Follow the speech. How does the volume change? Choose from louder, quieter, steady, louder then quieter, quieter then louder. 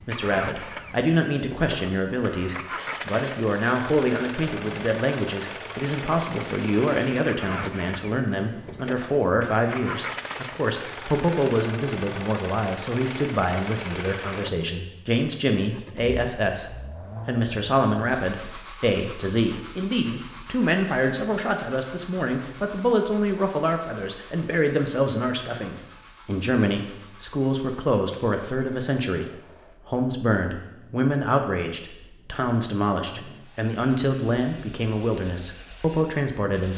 steady.